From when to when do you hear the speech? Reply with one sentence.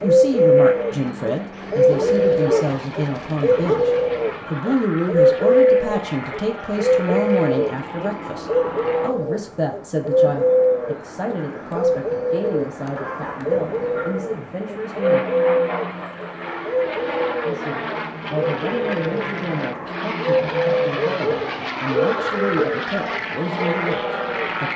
You can hear the speech from 0.0 to 15.2 s and from 17.4 to 24.7 s.